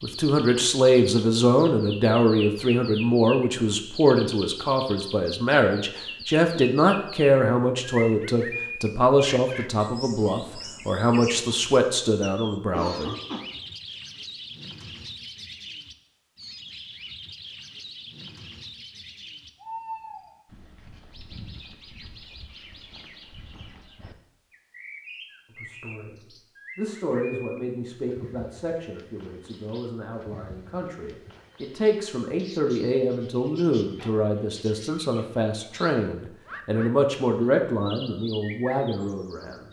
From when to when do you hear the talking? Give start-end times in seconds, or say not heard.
0.0-13.2, 25.6-39.6.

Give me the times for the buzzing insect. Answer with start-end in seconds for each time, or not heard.
not heard.